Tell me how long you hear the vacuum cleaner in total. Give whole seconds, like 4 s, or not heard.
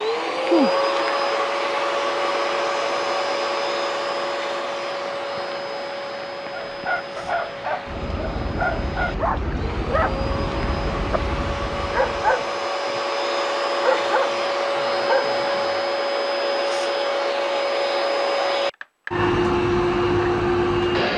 21 s.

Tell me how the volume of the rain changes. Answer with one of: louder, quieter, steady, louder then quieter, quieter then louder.
quieter then louder.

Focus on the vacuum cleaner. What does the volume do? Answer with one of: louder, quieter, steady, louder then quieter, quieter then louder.
quieter then louder.